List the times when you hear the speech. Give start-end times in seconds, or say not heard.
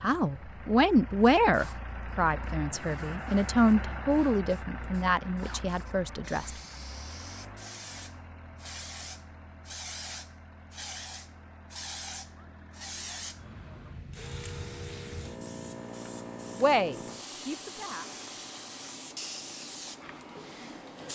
0.0-6.5, 16.6-18.1.